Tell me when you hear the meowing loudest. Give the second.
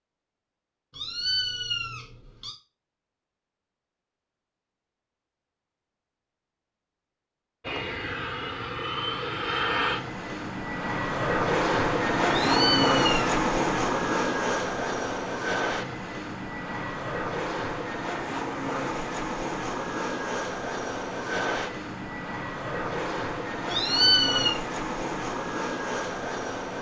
24 s.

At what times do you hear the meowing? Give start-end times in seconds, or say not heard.
0.9-2.5, 12.2-13.4, 23.6-24.6.